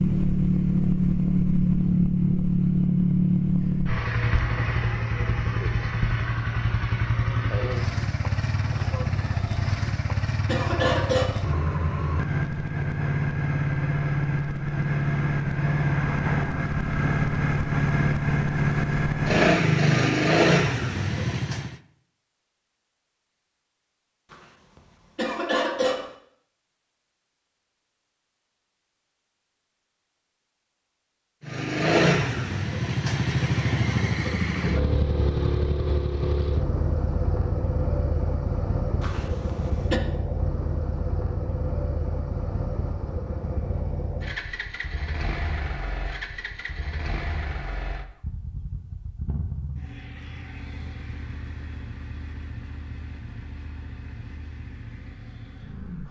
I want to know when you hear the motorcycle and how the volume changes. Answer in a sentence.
You can hear the motorcycle from 0.0 to 21.8 s, getting quieter then louder; and from 31.4 to 56.0 s, getting quieter.